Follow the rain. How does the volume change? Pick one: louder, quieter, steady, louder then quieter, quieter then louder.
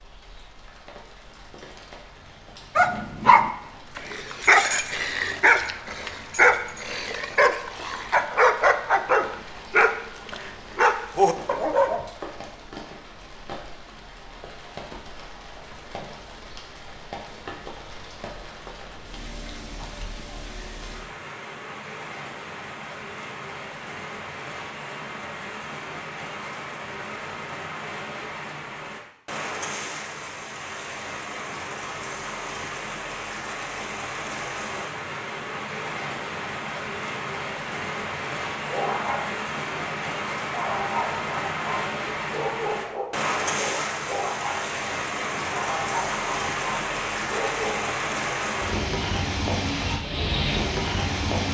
louder.